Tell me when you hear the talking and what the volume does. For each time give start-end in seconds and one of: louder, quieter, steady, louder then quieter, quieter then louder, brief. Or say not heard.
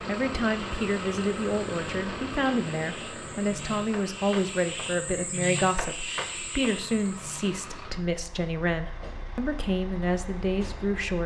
0.1-11.2 steady.